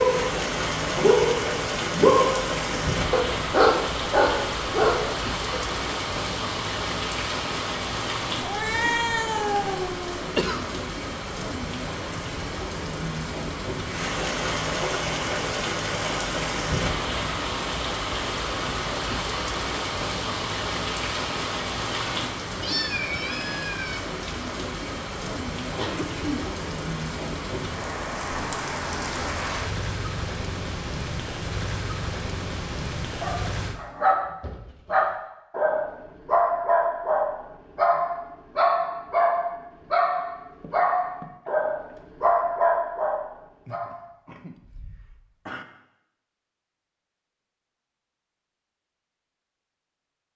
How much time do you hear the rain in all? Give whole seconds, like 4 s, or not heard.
34 s.